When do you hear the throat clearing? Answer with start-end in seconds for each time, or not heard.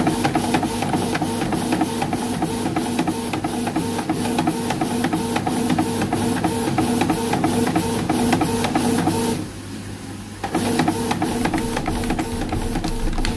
not heard.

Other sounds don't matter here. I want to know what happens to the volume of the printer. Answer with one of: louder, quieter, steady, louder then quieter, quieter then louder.
steady.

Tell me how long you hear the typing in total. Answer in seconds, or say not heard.
2 s.